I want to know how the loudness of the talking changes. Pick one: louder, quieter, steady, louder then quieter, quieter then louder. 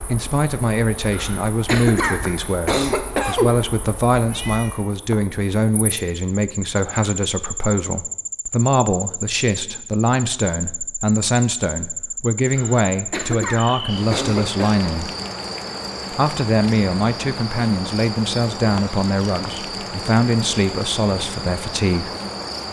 steady.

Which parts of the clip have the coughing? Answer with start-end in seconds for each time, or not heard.
1.1-3.5, 12.6-14.8.